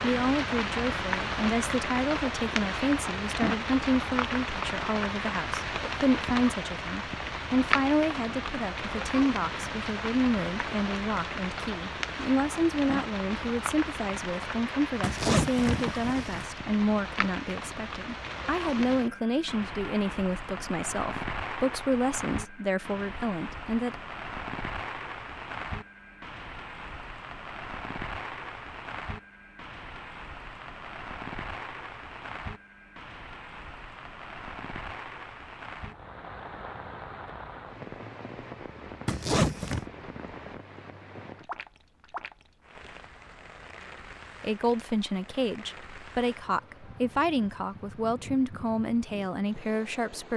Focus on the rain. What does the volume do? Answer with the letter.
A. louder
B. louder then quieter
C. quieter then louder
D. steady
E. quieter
E.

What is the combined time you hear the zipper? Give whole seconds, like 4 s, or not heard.
2 s.